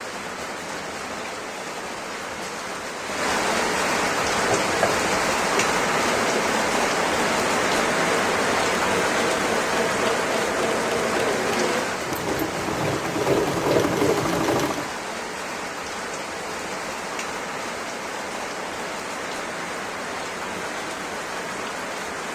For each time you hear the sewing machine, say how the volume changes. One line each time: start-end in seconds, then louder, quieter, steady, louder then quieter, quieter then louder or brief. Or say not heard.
4.2-14.9 louder.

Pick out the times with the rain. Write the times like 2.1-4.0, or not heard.
0.0-22.3.